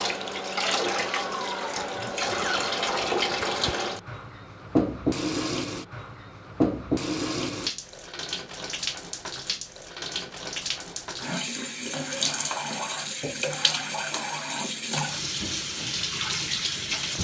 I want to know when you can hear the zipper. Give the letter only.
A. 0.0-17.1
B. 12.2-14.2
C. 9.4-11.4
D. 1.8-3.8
D.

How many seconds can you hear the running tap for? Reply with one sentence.
The running tap can be heard for 17 seconds in total.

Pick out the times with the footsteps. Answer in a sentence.
You can't hear the footsteps here.